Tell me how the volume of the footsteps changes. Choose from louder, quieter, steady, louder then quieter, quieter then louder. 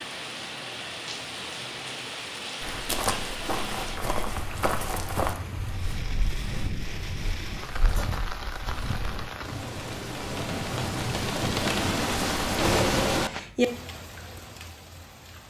quieter.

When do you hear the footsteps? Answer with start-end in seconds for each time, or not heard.
2.6-9.3.